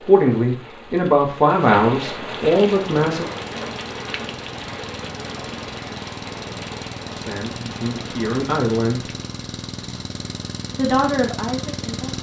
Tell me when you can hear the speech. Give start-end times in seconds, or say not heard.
0.0-3.2, 7.0-9.1, 10.7-12.1.